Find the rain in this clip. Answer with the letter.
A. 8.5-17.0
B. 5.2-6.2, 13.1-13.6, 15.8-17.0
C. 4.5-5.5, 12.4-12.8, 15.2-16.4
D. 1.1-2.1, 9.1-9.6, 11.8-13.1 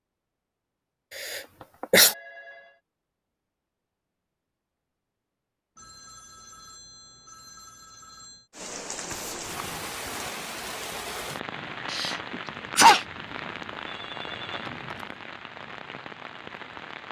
A.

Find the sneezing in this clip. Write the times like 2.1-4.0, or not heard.
1.1-2.1, 9.1-9.6, 11.8-13.1.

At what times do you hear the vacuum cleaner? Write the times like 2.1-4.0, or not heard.
not heard.